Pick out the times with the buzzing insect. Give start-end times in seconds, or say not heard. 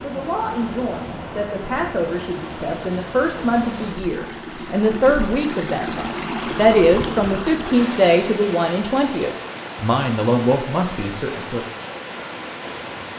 not heard.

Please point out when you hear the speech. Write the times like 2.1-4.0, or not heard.
0.0-11.6.